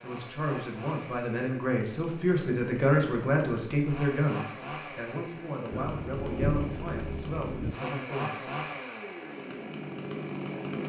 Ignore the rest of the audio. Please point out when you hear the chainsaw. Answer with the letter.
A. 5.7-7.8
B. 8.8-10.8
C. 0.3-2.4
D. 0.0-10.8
D.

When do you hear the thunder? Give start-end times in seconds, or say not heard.
5.7-7.8.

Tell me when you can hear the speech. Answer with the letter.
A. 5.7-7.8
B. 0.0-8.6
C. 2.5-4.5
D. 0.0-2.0
B.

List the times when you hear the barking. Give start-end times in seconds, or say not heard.
not heard.